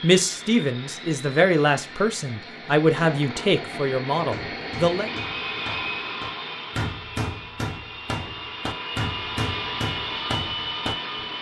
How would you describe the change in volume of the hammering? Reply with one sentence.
The loudness of the hammering goes up.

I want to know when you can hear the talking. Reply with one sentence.
The talking can be heard from 0.0 to 5.1 s.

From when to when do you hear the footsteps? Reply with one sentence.
You can't hear the footsteps here.